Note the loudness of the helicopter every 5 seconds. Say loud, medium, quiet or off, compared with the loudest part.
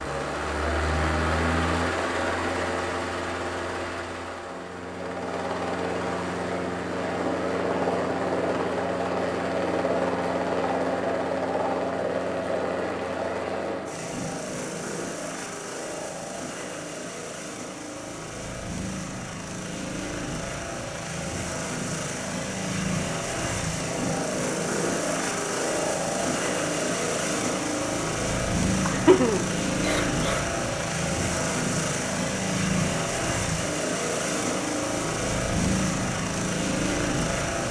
loud, loud, loud, medium, loud, loud, loud, loud.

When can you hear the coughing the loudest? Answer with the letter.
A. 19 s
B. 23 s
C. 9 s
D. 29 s
D.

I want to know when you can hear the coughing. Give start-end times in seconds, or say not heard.
28.9-30.4.